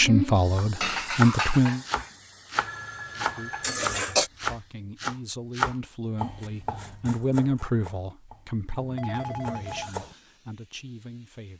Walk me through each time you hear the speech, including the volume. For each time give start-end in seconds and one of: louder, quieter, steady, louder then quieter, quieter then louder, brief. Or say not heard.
0.0-1.8 brief
3.1-11.5 louder then quieter.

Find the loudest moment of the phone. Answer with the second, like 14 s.
9 s.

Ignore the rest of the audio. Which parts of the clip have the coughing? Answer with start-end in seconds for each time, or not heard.
3.6-4.3.